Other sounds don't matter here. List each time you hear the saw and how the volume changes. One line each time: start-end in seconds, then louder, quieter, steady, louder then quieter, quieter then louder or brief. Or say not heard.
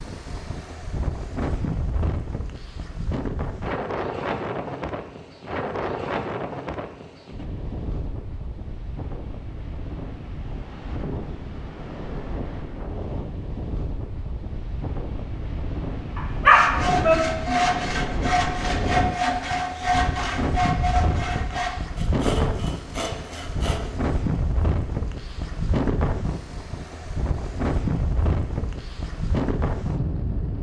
16.5-23.8 quieter.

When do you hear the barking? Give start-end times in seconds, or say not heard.
16.1-17.1.